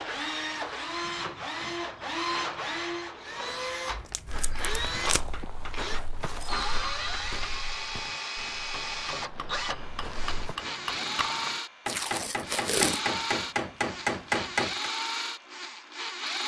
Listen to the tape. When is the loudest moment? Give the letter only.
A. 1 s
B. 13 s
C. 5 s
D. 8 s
B.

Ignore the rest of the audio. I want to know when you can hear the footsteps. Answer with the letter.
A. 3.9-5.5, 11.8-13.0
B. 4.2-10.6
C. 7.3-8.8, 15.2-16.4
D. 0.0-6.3
B.